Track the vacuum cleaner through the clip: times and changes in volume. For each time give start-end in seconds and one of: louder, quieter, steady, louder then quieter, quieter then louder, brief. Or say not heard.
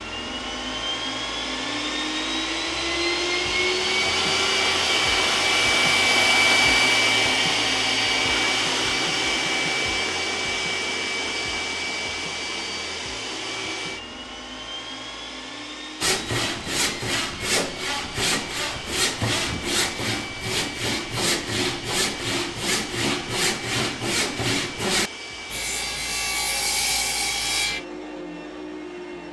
0.0-29.2 quieter.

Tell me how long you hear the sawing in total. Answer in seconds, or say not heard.
12 s.